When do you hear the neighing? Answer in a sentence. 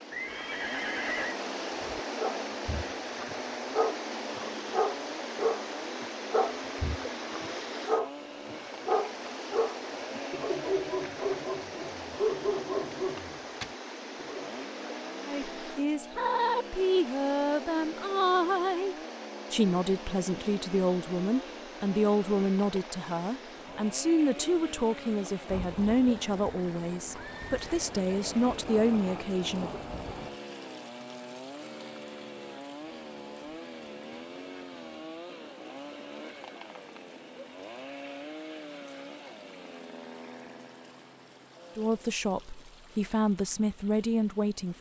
You can hear the neighing from 0.1 to 1.4 s and from 27.1 to 28.6 s.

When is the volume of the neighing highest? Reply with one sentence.
The volume of the neighing peaks at 1 second.